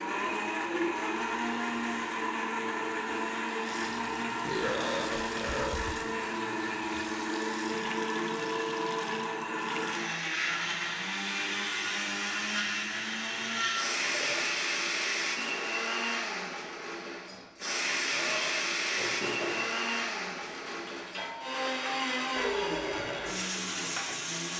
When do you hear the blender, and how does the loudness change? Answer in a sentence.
You can hear the blender from 0.0 to 24.5 s, at a steady volume.